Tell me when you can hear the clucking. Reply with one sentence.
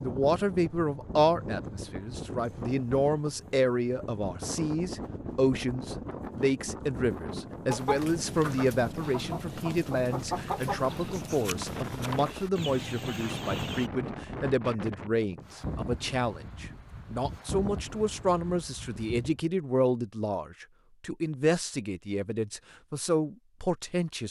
The clucking can be heard from 7.7 to 13.9 s.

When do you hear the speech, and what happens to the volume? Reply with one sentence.
You can hear the speech from 0.0 to 24.2 s, at a steady volume.